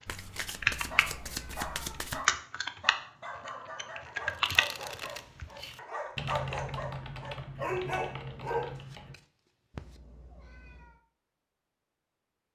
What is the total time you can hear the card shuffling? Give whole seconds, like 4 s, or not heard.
5 s.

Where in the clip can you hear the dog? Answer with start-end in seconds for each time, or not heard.
0.9-8.8.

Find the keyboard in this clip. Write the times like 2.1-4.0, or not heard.
0.4-1.6, 2.1-9.2.